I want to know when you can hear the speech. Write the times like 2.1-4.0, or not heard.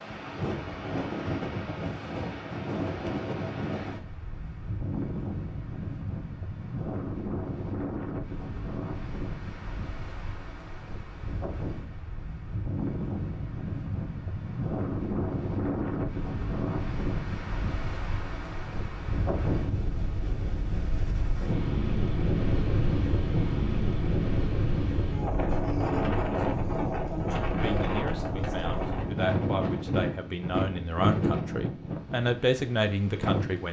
27.5-33.6.